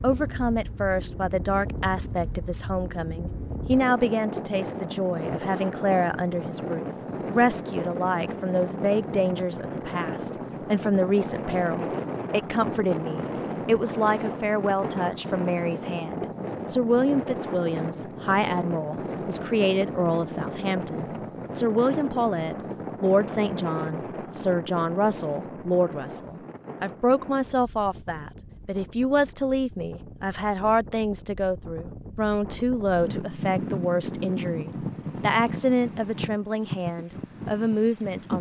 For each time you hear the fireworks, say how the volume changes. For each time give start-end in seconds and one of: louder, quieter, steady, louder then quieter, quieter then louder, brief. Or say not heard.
not heard.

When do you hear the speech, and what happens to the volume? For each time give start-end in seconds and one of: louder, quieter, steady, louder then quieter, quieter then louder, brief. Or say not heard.
0.0-38.3 steady.